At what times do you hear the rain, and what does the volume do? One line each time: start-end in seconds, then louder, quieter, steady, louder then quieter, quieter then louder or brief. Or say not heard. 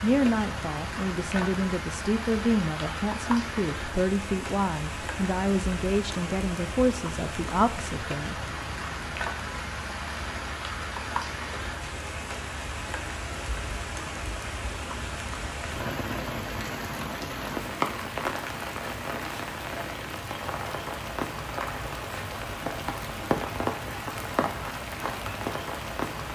0.0-26.3 steady.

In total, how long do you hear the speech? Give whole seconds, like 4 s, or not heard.
8 s.